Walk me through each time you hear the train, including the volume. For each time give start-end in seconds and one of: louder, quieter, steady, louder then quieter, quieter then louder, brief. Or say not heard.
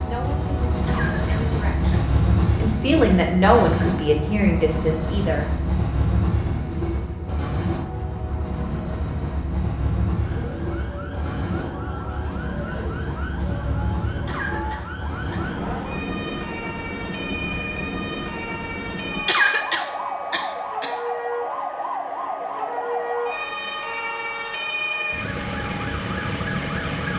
0.0-27.1 quieter.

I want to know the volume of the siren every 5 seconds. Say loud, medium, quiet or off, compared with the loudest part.
off, off, medium, medium, loud, loud.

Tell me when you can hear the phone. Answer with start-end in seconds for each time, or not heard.
not heard.